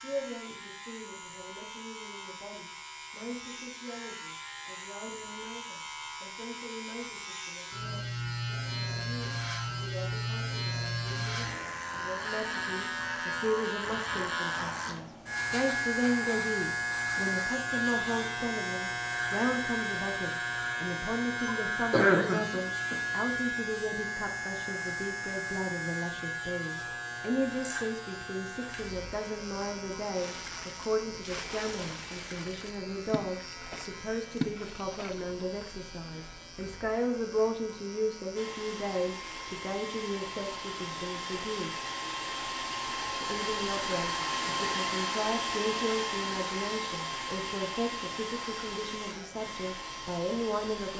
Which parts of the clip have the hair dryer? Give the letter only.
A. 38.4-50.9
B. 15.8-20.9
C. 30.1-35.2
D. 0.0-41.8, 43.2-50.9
A.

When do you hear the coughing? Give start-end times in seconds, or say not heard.
21.4-22.9.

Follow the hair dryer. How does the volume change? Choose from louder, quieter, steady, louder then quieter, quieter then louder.
louder then quieter.